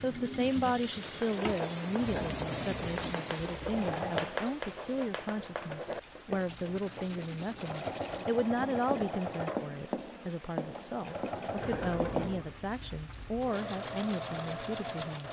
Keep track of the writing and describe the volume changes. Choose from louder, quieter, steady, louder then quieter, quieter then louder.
steady.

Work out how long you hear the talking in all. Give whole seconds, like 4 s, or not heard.
15 s.